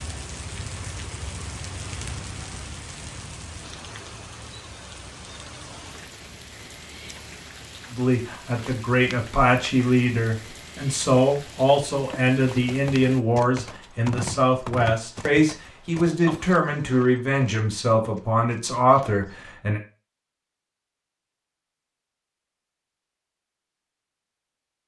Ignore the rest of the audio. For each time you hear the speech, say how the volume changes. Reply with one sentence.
The speech can be heard from 7.9 to 19.8 s, at a steady volume.